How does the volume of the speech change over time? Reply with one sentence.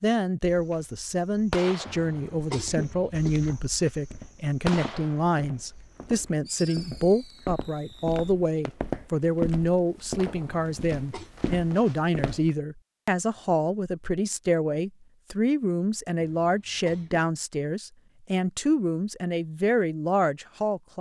The loudness of the speech stays about the same.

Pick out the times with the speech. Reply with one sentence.
The speech can be heard from 0.0 to 20.9 s.